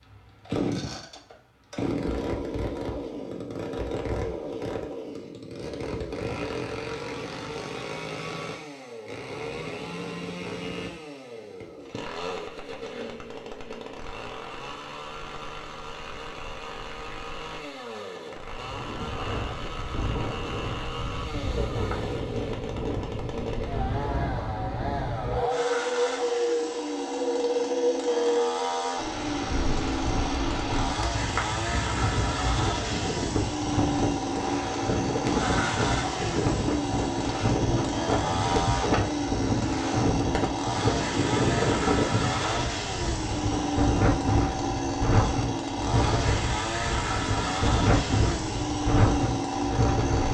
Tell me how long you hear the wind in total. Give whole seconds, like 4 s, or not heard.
32 s.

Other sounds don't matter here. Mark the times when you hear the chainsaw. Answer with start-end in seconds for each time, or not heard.
0.0-50.3.